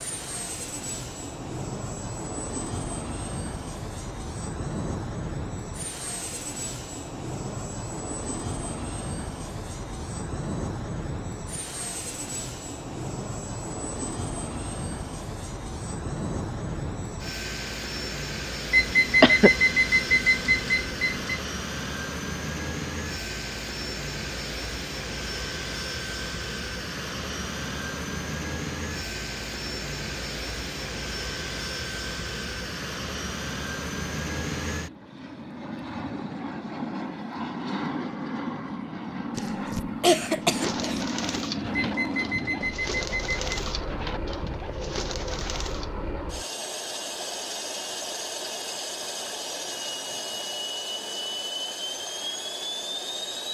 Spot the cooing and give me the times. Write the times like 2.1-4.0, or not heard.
40.2-46.0.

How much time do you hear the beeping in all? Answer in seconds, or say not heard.
4 s.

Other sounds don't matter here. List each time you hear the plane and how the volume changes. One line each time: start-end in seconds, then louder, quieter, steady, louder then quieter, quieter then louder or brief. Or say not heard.
0.0-53.5 steady.